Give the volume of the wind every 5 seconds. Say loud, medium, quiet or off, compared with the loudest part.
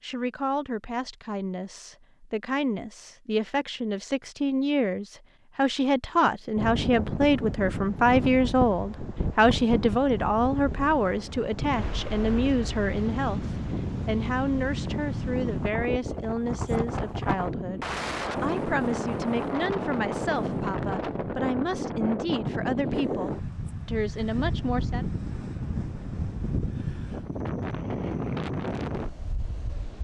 off, loud, loud, loud, loud, loud.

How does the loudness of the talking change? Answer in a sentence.
The volume of the talking goes up, then down.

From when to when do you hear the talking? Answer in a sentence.
The talking can be heard from 0.0 to 25.1 s.